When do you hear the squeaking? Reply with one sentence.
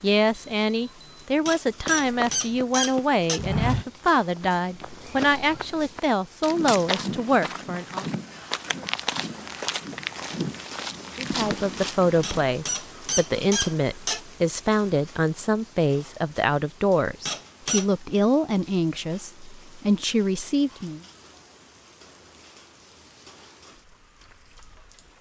The squeaking can be heard from 1.4 to 3.4 s, from 12.2 to 14.2 s and from 17.2 to 17.9 s.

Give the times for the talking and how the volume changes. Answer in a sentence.
You can hear the talking from 0.0 to 8.1 s, at a steady volume; and from 11.2 to 21.0 s, at a steady volume.